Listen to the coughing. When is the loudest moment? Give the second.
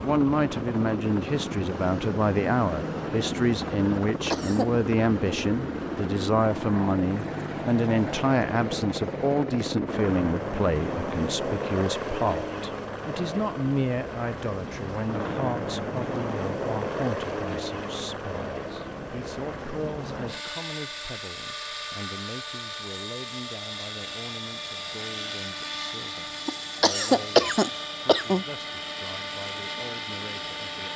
27 s.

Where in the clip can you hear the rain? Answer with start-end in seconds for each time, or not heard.
not heard.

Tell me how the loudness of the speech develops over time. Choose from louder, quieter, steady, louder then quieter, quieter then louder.
quieter.